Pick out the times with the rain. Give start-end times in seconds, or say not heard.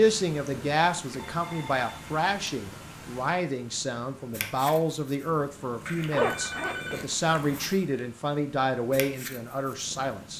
not heard.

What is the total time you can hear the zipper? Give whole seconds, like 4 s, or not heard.
2 s.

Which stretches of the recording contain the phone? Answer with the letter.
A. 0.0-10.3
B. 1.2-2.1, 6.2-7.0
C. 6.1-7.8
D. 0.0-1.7
B.